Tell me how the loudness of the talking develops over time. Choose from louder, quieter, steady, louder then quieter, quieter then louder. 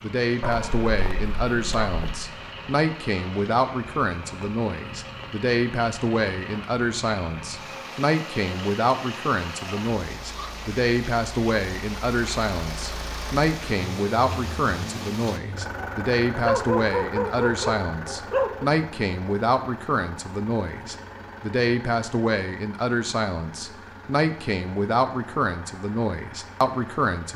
steady.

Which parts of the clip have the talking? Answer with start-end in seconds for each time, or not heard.
0.0-27.3.